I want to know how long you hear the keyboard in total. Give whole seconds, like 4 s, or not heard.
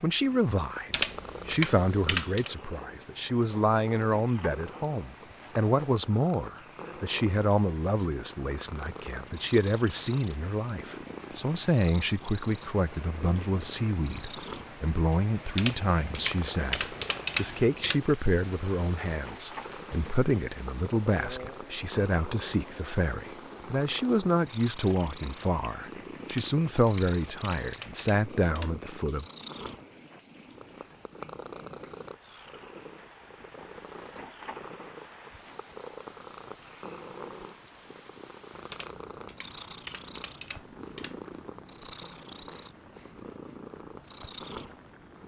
9 s.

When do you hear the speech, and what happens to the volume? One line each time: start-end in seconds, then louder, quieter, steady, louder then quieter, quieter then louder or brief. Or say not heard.
0.0-29.2 steady.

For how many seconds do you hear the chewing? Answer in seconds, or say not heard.
not heard.